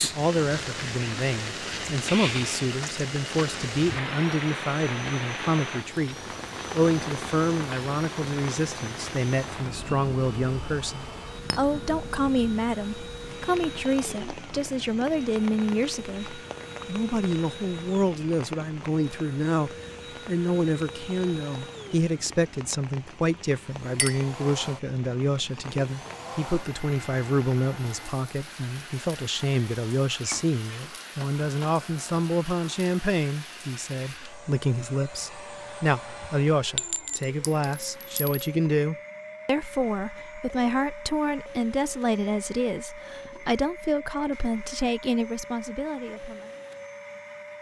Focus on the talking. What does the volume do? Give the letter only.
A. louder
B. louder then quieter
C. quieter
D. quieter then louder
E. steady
E.